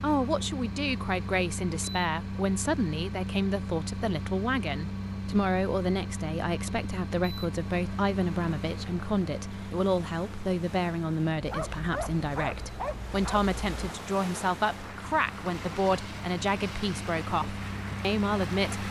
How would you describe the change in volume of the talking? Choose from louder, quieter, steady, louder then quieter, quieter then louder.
steady.